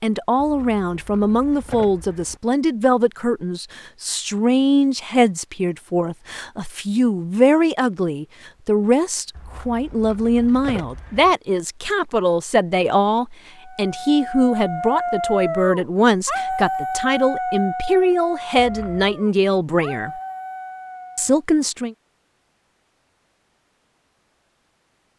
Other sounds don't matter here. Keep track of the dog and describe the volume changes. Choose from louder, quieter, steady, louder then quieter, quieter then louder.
quieter.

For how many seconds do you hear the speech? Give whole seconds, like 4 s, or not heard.
21 s.